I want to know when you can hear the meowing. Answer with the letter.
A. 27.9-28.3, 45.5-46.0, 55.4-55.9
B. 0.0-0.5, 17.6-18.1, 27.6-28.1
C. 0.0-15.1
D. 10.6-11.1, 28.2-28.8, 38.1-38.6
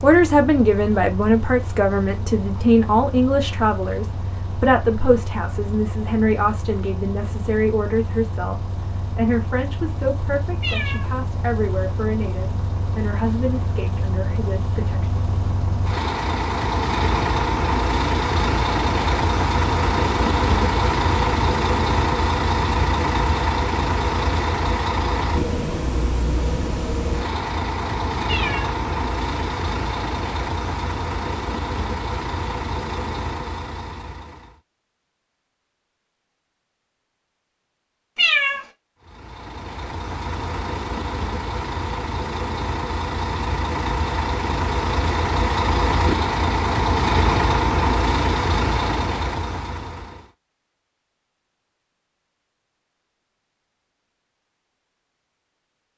D.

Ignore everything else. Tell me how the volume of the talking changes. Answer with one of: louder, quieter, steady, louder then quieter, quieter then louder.
quieter.